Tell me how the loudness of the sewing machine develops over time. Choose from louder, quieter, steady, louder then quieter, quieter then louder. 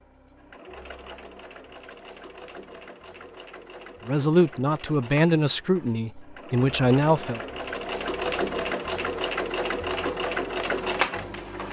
louder.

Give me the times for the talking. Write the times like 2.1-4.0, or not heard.
4.0-7.4.